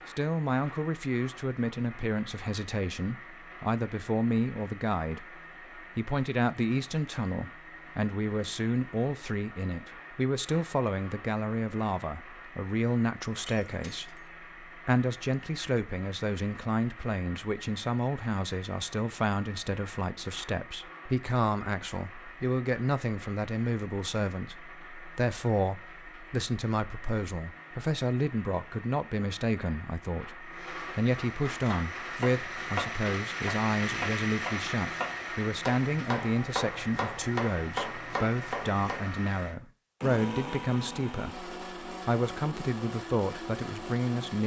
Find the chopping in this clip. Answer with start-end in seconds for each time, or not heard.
31.4-39.0.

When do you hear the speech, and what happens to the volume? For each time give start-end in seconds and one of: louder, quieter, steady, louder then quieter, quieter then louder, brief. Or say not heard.
0.1-44.4 steady.